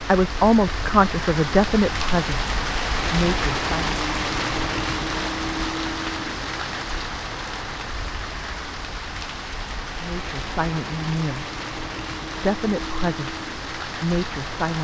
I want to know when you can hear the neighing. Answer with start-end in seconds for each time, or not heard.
not heard.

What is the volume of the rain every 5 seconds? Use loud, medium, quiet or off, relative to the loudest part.
loud, loud, medium.